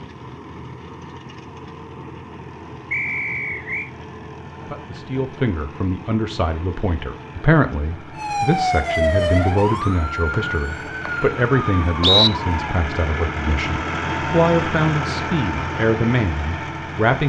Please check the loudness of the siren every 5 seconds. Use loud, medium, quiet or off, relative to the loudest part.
off, loud, medium, off.